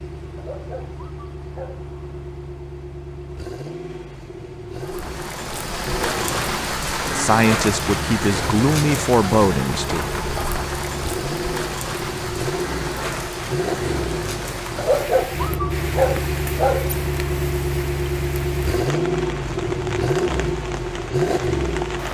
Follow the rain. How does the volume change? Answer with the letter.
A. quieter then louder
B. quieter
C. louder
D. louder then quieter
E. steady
B.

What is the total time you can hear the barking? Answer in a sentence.
The barking can be heard for 4 seconds in total.